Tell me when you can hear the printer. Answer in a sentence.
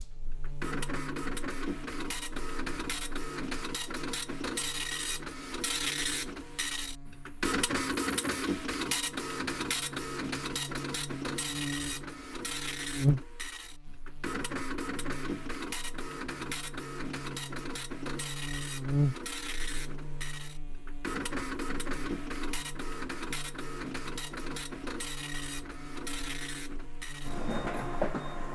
You can hear the printer from 0.0 to 28.4 s.